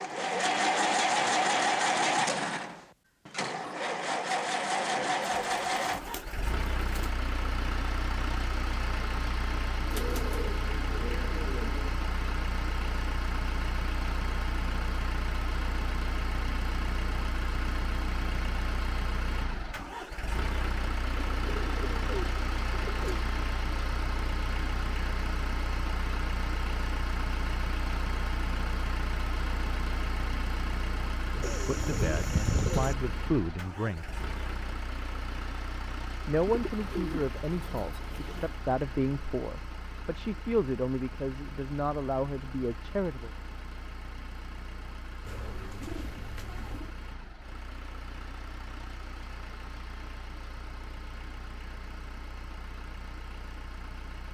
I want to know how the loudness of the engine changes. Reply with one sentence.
The volume of the engine goes down.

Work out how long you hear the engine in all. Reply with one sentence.
The engine can be heard for 54 seconds in total.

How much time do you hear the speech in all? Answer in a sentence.
You can hear the speech for 10 seconds altogether.